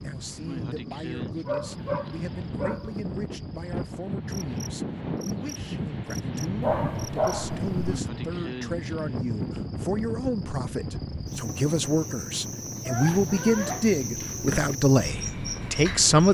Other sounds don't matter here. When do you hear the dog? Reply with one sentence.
You can hear the dog from 1.4 to 3.0 s, from 6.6 to 8.0 s and from 12.8 to 14.8 s.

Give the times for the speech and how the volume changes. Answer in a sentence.
The speech can be heard from 0.0 to 16.2 s, getting louder.